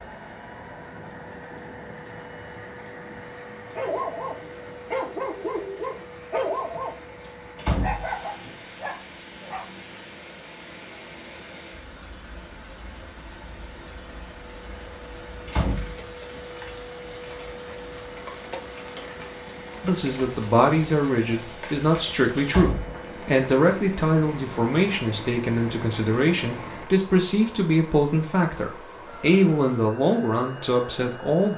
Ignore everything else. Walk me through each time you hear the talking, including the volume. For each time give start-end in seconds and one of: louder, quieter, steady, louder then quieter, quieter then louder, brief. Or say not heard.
19.8-31.5 steady.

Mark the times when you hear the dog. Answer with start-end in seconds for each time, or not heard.
3.8-9.7.